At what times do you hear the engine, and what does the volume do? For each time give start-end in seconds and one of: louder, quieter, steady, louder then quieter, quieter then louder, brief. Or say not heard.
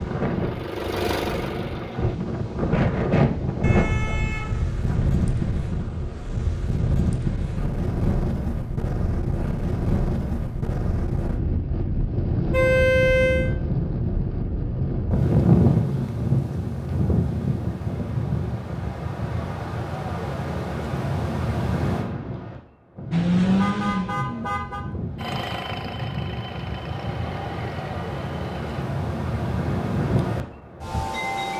0.0-2.2 brief
23.1-28.9 quieter.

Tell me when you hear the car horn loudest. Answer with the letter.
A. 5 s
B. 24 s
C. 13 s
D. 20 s
C.